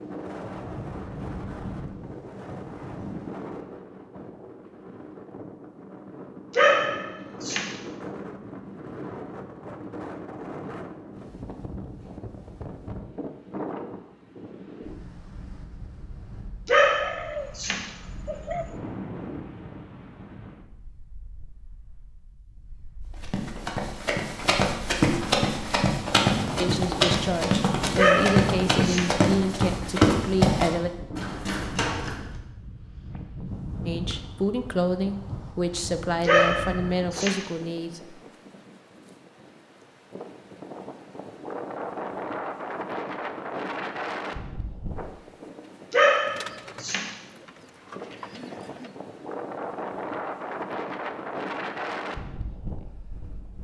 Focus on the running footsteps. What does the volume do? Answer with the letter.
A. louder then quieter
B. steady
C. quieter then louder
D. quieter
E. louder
B.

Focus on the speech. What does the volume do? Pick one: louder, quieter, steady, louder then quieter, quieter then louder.
steady.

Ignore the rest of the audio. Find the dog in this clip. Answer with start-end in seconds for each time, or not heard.
6.5-7.7, 16.6-17.9, 27.9-29.1, 36.2-37.4, 45.9-47.1.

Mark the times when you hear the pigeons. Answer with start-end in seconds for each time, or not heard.
16.9-18.8, 46.2-48.9.